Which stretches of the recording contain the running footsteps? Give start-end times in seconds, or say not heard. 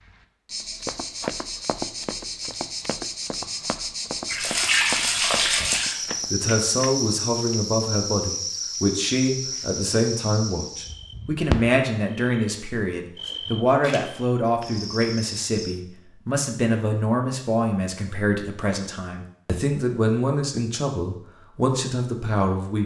0.7-6.5.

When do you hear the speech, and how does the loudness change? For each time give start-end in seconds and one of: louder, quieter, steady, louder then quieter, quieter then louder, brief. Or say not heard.
6.3-22.8 steady.